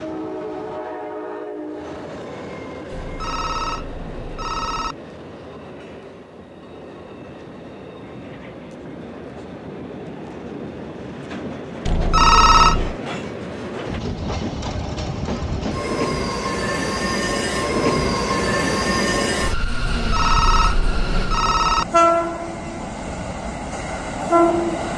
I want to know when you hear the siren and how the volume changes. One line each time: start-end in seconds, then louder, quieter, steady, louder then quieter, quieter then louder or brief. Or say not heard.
not heard.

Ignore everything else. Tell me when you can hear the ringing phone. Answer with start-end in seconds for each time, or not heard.
2.9-5.0, 11.8-12.9, 19.8-21.9.